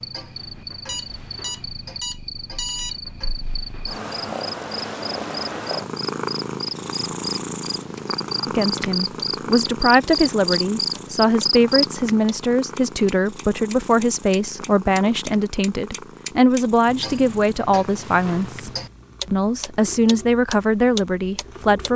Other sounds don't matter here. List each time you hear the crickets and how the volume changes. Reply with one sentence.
The crickets can be heard from 0.0 to 11.8 s, getting louder.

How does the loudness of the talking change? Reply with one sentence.
The volume of the talking stays about the same.